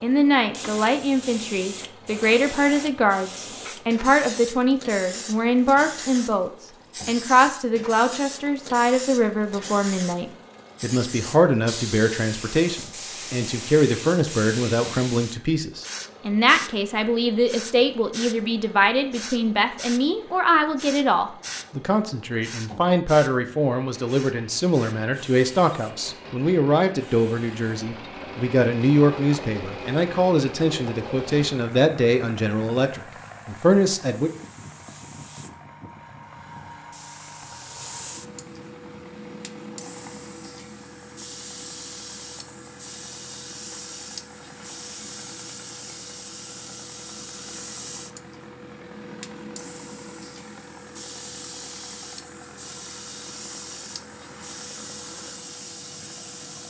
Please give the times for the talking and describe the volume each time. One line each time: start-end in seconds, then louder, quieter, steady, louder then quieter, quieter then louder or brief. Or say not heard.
0.0-34.3 steady.